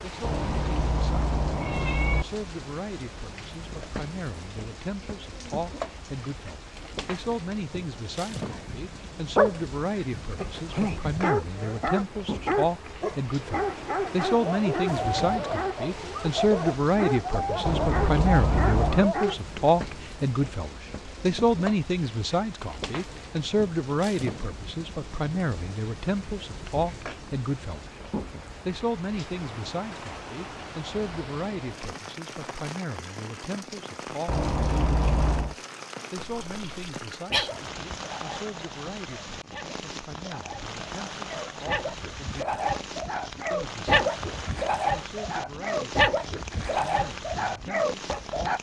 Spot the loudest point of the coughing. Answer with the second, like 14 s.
37 s.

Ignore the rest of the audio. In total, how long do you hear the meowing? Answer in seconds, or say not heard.
5 s.